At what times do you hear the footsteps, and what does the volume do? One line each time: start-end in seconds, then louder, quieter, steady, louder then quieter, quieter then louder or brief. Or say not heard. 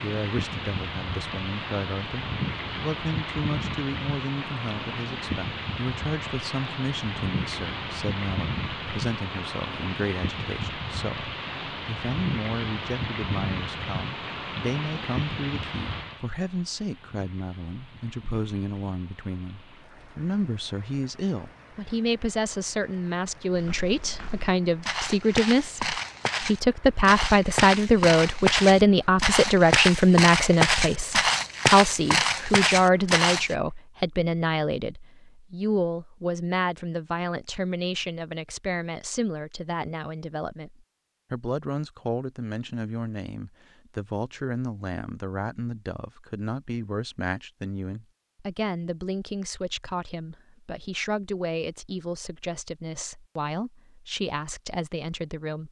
23.6-33.5 louder.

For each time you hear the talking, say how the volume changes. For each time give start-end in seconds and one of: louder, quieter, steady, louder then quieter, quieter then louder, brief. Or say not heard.
0.0-55.6 louder then quieter.